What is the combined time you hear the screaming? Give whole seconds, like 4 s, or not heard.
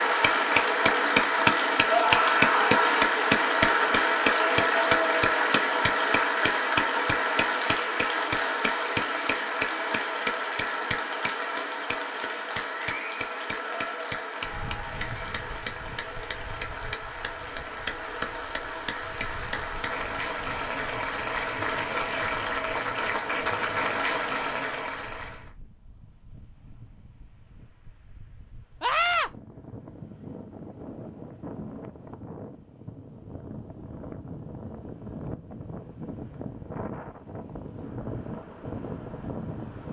2 s.